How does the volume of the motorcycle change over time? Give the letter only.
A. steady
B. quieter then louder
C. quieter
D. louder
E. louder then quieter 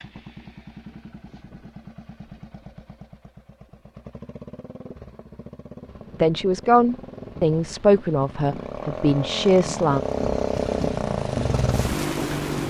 D.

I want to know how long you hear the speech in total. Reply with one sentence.
The speech can be heard for 4 seconds in total.